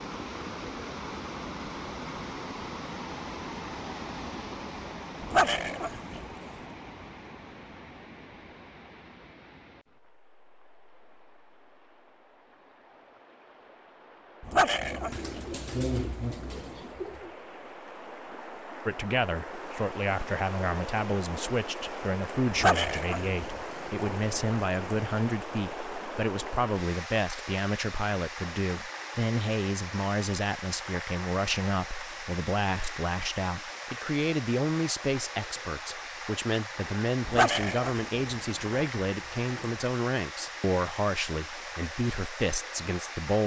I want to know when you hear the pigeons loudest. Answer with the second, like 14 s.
16 s.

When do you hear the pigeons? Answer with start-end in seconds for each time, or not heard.
14.8-17.3.